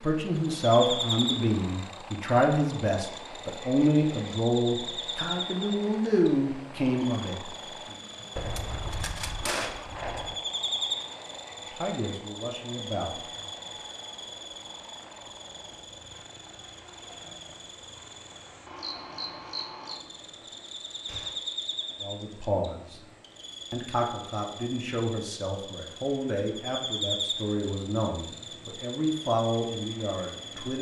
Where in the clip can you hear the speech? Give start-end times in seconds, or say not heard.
0.0-7.3, 11.7-13.4, 22.0-23.0, 23.7-30.7.